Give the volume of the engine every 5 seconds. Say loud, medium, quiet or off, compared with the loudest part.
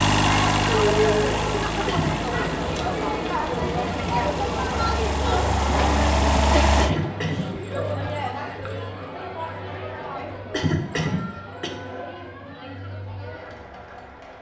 loud, loud, off.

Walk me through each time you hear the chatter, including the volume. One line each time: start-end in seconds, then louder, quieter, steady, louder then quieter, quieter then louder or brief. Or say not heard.
0.2-14.3 quieter.